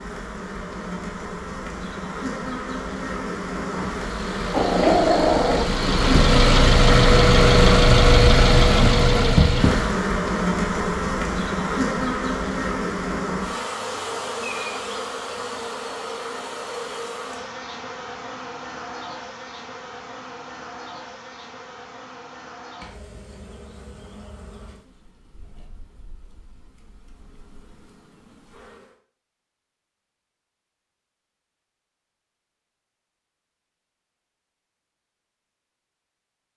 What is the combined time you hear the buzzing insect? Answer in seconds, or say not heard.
29 s.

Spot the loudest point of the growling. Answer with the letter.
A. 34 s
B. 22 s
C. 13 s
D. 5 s
D.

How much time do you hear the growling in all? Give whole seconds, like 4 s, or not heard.
2 s.